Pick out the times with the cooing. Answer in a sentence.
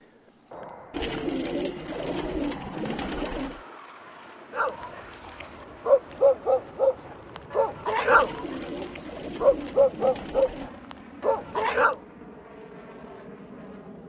The cooing can be heard from 0.9 to 3.6 s and from 8.1 to 10.7 s.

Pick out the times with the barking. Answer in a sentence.
The barking can be heard from 4.5 to 11.9 s.